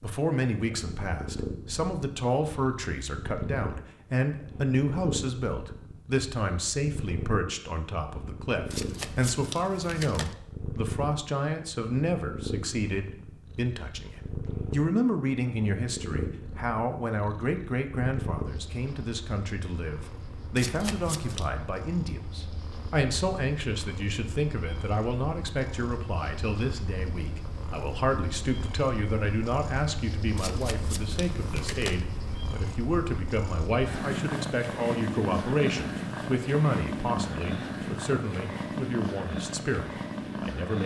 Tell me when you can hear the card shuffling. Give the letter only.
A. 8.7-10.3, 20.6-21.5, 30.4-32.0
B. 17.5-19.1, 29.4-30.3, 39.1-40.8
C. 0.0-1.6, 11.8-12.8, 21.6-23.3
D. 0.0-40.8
A.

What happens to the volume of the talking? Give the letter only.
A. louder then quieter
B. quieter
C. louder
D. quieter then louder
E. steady
E.